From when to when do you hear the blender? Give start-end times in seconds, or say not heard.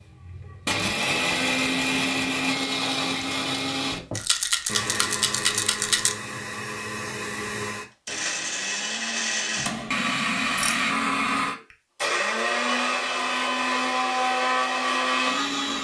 0.0-15.7.